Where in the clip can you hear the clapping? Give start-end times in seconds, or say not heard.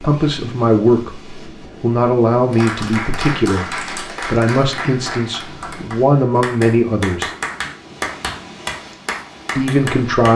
2.5-10.3.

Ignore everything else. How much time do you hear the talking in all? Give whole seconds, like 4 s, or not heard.
8 s.